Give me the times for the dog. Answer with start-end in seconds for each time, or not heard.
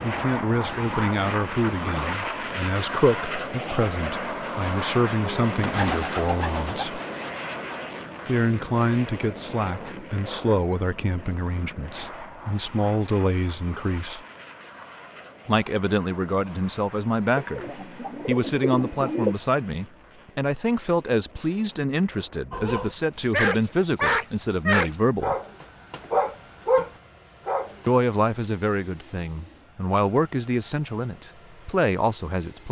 22.5-27.9.